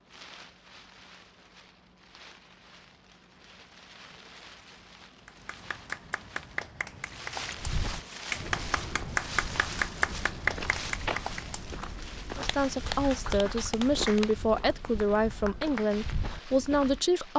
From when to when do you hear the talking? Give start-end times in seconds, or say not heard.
12.3-17.3.